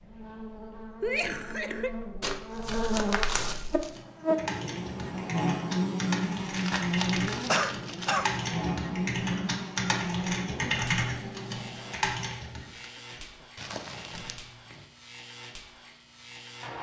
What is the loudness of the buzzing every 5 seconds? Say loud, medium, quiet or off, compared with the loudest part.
loud, loud, medium, quiet.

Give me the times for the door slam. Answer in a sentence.
You can't hear the door slam here.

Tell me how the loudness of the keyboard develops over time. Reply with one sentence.
The volume of the keyboard goes up.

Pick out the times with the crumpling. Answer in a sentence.
The crumpling can be heard from 2.2 to 3.9 s, from 6.5 to 8.2 s and from 13.6 to 14.8 s.